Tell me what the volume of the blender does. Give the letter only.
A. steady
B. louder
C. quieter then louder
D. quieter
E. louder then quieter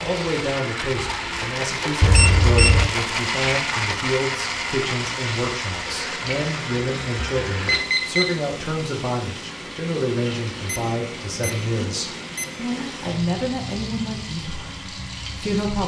D.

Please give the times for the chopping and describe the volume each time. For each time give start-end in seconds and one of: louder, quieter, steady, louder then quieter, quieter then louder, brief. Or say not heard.
not heard.